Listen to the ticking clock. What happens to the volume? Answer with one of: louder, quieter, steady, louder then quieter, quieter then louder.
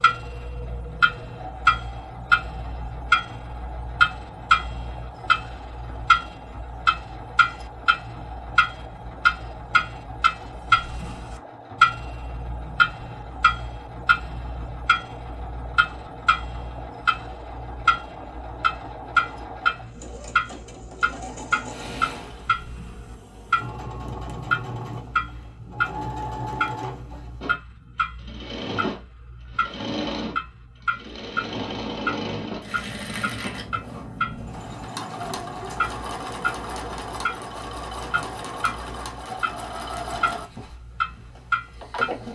quieter.